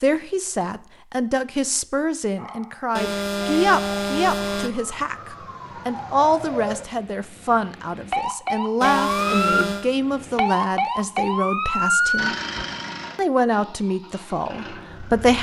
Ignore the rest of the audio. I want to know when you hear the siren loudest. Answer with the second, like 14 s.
12 s.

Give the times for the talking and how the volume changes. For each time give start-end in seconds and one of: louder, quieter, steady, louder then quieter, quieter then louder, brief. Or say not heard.
0.0-12.3 steady
13.2-15.3 brief.